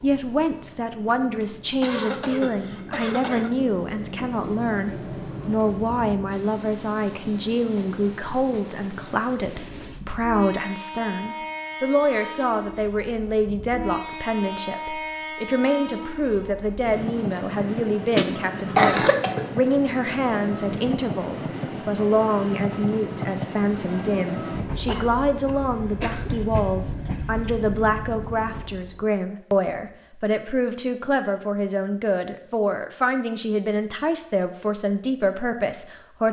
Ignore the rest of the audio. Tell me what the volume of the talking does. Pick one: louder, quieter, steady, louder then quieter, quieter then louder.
steady.